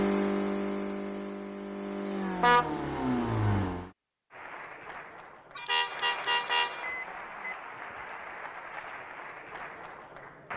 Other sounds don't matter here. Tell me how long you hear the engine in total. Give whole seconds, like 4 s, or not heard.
4 s.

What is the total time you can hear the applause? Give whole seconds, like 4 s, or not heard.
6 s.